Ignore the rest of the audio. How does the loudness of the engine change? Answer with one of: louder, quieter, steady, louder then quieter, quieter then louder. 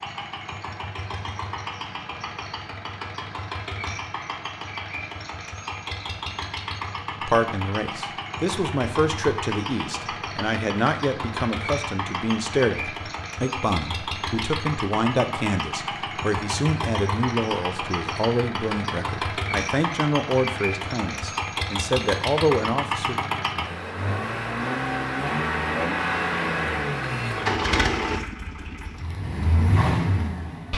louder.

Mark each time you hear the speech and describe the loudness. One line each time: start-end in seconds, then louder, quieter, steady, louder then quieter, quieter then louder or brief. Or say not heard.
7.2-23.1 steady.